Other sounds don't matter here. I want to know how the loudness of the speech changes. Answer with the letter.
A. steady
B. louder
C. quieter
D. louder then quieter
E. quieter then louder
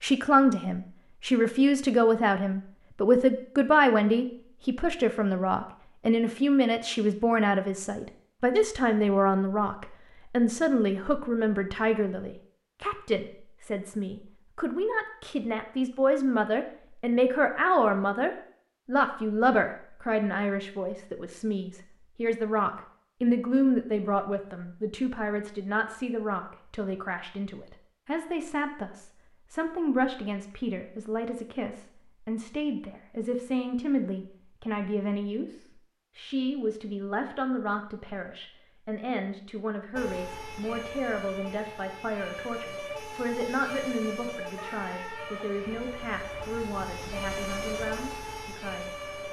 C.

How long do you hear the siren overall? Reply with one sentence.
The siren can be heard for 9 seconds in total.